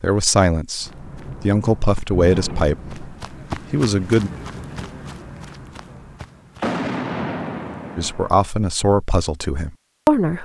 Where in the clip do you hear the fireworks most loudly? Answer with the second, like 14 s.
7 s.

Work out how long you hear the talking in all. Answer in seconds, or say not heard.
7 s.